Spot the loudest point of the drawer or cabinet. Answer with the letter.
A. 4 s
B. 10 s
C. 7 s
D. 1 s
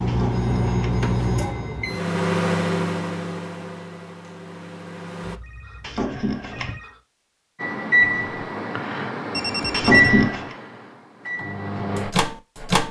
B.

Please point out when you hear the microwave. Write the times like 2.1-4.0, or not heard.
0.0-5.4, 7.6-12.8.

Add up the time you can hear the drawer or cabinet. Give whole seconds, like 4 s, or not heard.
3 s.